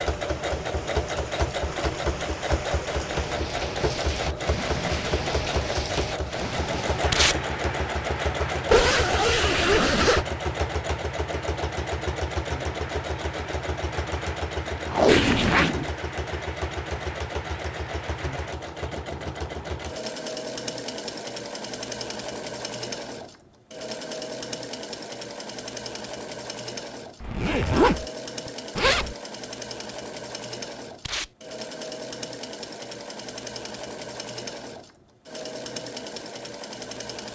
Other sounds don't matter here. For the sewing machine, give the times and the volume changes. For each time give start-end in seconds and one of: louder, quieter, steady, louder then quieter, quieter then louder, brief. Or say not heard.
0.0-37.2 quieter.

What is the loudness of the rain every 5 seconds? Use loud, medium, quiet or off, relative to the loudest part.
loud, loud, medium, medium, off, off, off, off.